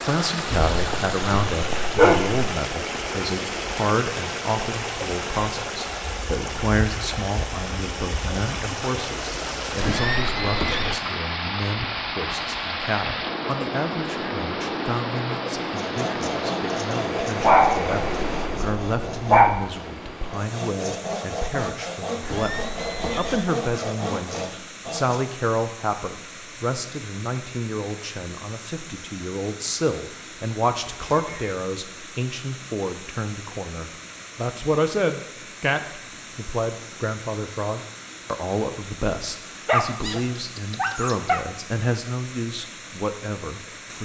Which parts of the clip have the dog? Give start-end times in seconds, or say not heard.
0.5-2.5, 17.4-19.6, 39.6-41.5.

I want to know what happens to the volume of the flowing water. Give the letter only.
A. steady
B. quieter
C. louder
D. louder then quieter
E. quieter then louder
B.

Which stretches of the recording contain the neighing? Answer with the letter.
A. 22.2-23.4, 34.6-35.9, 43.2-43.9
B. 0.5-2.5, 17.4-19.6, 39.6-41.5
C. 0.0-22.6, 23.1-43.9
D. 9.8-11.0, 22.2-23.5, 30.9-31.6
D.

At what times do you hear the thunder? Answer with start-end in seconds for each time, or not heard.
not heard.